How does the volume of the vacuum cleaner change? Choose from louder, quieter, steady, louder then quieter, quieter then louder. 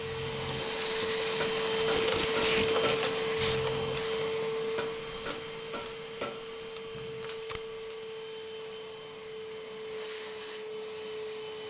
quieter.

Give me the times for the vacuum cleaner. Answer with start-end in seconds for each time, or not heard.
0.0-11.6.